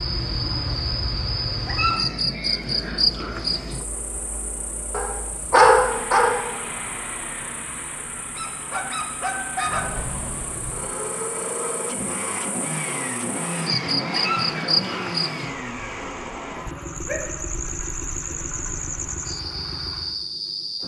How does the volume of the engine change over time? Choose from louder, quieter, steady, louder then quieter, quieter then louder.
louder then quieter.